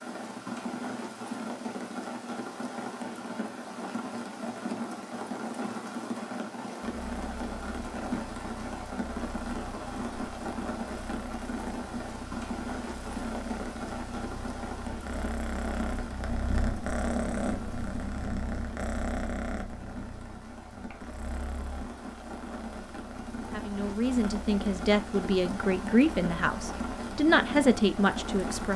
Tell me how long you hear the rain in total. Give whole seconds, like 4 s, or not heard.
29 s.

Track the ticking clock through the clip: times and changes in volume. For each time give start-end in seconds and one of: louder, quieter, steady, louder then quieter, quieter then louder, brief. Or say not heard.
not heard.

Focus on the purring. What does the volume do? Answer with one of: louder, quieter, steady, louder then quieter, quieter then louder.
louder then quieter.